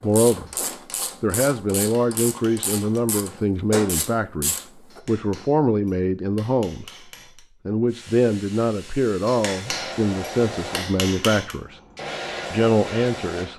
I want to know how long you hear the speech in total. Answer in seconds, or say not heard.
12 s.